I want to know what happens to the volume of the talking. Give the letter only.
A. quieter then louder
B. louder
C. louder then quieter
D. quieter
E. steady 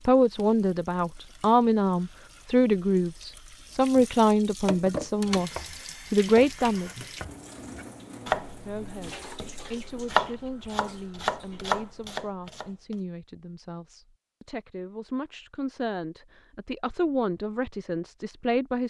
A.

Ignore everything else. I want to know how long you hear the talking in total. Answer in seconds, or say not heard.
17 s.